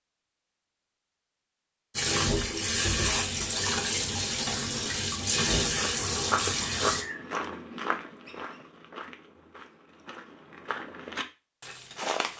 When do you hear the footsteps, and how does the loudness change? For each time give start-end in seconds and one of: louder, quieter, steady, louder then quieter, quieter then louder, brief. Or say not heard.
5.8-12.3 quieter then louder.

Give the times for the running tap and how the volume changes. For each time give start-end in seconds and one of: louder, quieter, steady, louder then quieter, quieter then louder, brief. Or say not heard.
1.9-7.0 steady.